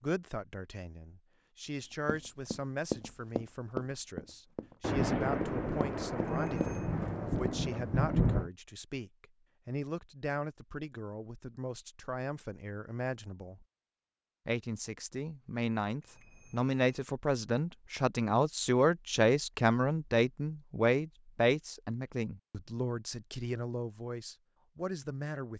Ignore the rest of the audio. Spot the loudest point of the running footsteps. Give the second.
3 s.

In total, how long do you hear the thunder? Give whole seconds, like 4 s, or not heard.
4 s.